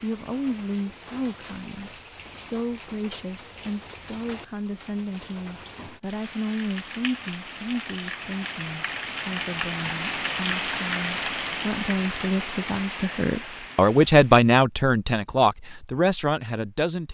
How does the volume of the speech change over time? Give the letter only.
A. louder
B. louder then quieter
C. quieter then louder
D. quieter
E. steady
A.